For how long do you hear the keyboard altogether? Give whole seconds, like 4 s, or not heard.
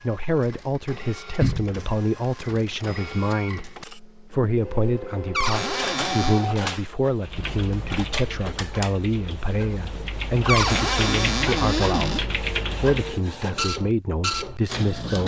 6 s.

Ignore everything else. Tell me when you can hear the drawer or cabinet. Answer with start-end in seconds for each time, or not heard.
1.4-1.9, 5.3-6.5, 10.4-12.2.